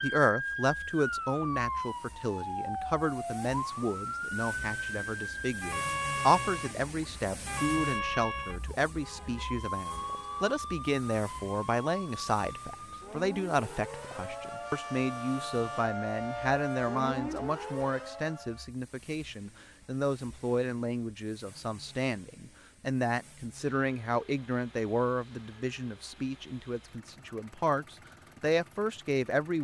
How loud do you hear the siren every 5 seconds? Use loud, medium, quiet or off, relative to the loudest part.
loud, loud, medium, loud, off, off.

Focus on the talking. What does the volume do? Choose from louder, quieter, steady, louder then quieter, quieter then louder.
steady.